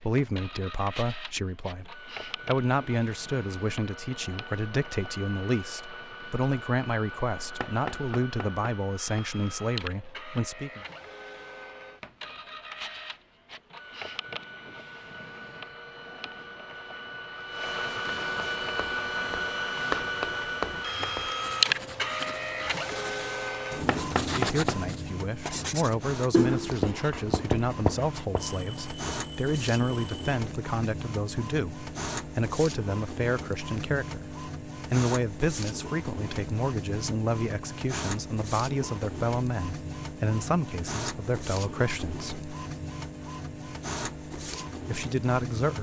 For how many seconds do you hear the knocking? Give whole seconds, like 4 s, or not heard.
2 s.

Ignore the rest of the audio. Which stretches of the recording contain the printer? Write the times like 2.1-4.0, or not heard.
0.0-45.7.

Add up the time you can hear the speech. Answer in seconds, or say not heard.
30 s.